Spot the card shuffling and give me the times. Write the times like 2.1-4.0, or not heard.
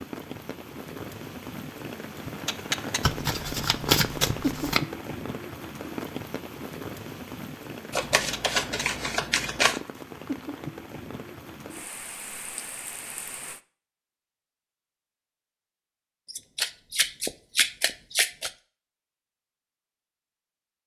3.0-4.8, 7.9-9.8, 16.2-18.5.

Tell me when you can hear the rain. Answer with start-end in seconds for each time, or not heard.
0.0-13.6.